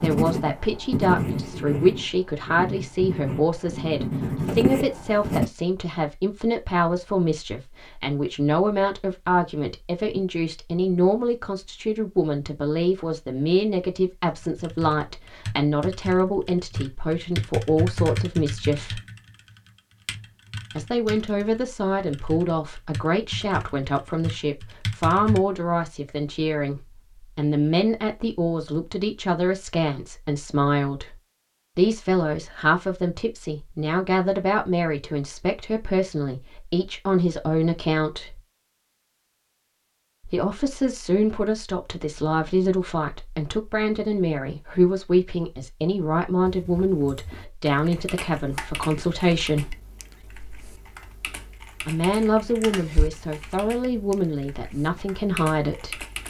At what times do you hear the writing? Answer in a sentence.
You can hear the writing from 0.0 to 5.5 s.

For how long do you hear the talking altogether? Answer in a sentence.
The talking can be heard for 50 seconds in total.